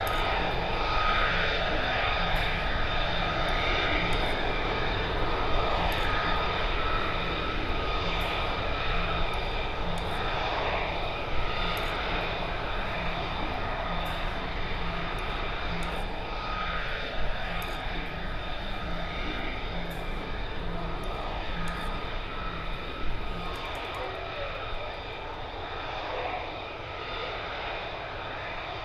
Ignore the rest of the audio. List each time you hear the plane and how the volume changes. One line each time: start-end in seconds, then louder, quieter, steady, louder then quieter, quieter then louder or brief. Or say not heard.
0.0-28.8 quieter.